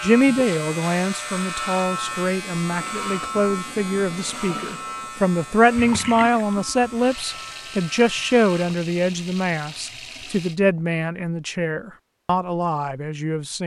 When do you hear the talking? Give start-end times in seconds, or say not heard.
0.0-13.6.